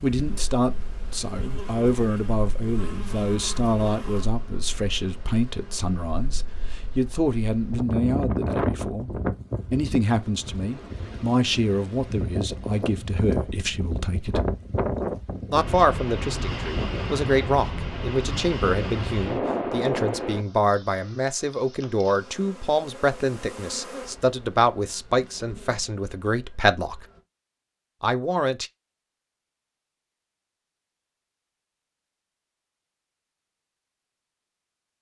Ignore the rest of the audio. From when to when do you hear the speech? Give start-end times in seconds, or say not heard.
0.0-9.1, 9.7-14.4, 15.5-27.0, 28.0-28.7.